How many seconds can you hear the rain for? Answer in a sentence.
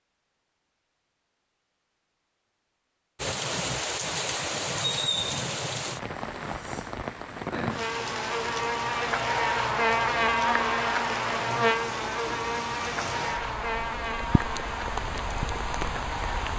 You can hear the rain for 13 seconds altogether.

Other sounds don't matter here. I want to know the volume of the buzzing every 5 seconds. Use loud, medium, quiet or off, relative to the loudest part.
off, loud, loud, medium.